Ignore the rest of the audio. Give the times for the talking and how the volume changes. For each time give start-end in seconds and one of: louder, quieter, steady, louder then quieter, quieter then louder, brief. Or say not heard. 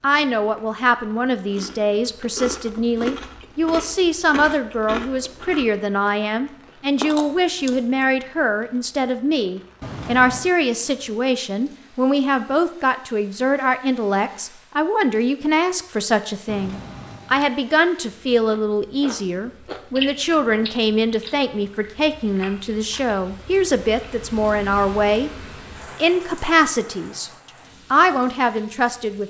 0.0-25.3 steady
25.9-27.3 brief
27.9-29.2 brief.